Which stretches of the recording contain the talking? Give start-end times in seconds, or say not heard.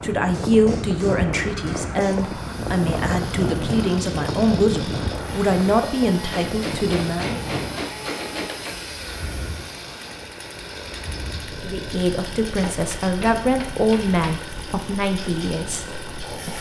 0.0-7.4, 11.6-16.5.